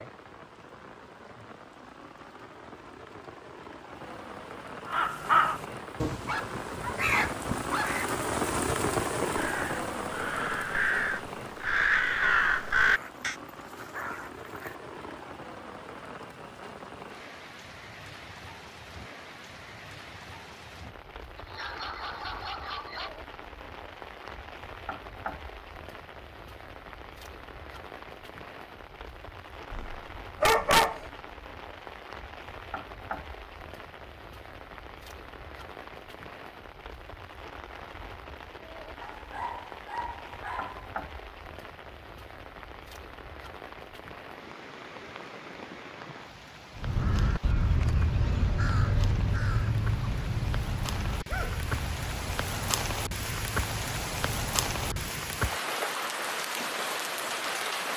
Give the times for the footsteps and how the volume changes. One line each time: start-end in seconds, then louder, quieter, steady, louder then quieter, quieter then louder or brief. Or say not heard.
not heard.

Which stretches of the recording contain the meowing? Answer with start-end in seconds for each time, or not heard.
not heard.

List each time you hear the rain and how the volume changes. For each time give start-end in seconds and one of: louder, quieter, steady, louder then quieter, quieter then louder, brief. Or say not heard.
0.0-57.9 quieter then louder.